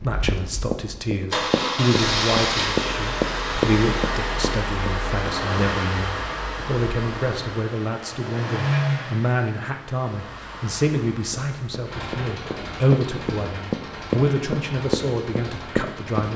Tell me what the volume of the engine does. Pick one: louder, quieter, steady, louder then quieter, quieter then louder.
quieter.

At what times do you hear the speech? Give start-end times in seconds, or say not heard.
0.0-16.3.